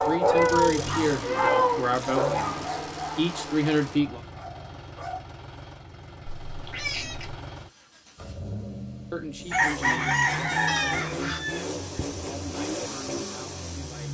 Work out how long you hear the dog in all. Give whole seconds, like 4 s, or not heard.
5 s.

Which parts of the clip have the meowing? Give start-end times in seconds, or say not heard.
0.2-1.9, 6.2-7.3, 10.7-11.4.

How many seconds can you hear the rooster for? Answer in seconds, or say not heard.
3 s.